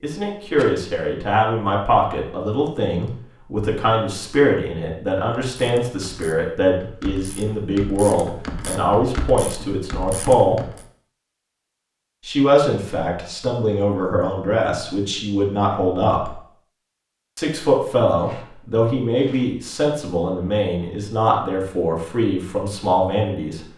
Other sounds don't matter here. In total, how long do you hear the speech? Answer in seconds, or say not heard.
21 s.